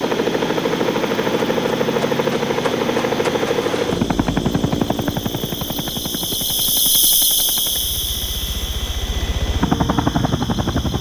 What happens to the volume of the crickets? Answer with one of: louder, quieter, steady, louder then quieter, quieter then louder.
louder then quieter.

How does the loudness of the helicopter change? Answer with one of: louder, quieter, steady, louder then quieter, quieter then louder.
quieter then louder.